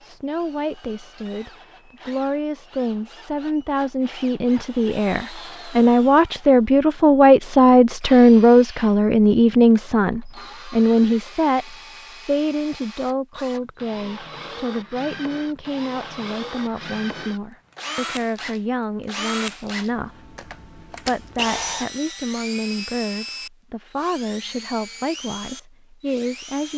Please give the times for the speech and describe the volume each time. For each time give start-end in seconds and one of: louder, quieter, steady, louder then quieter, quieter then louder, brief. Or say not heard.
0.0-26.7 louder then quieter.